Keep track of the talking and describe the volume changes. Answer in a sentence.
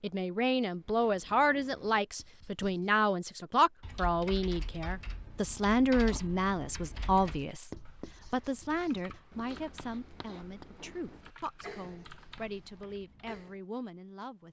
The volume of the talking goes down.